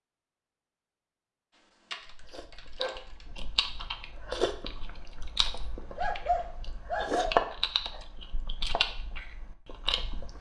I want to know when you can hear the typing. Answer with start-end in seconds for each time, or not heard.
1.9-3.3.